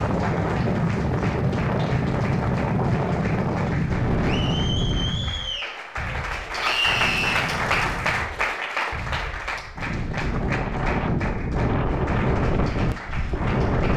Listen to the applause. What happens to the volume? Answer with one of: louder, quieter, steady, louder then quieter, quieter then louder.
louder then quieter.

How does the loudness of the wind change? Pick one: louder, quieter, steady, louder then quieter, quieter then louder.
quieter then louder.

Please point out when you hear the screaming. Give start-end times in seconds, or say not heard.
6.6-7.5.